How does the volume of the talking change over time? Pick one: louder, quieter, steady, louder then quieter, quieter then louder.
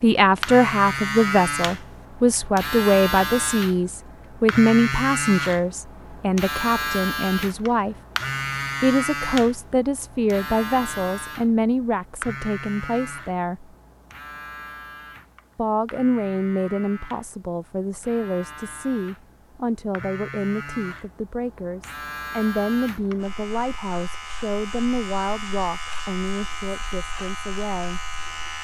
quieter.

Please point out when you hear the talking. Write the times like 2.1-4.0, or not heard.
0.0-8.0, 8.8-13.7, 15.6-28.0.